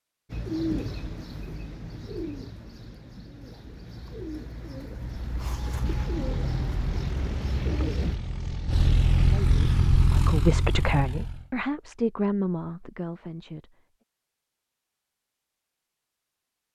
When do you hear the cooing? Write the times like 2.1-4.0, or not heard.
0.3-8.2.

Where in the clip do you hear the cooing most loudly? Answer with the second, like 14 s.
1 s.